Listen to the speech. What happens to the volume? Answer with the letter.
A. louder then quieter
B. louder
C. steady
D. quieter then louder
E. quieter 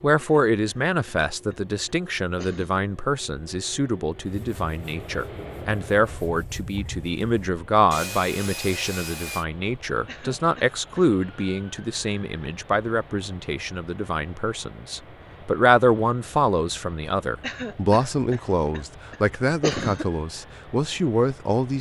C.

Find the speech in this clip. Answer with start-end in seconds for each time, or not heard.
0.0-21.7.